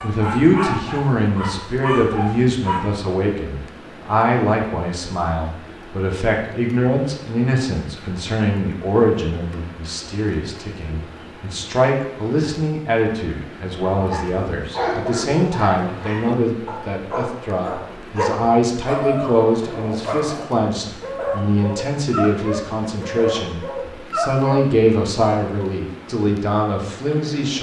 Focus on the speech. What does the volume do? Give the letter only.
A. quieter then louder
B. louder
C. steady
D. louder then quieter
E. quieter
C.